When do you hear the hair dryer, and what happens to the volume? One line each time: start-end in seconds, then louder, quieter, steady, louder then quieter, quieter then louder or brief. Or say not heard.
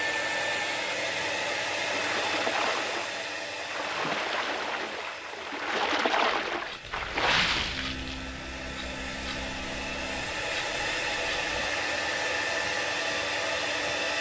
0.0-14.1 quieter then louder.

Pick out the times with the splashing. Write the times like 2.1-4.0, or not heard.
1.9-8.2.